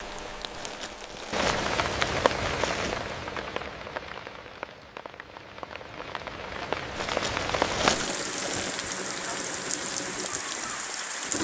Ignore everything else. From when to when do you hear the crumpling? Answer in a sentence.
The crumpling can be heard from 0.5 to 3.0 s and from 7.0 to 8.9 s.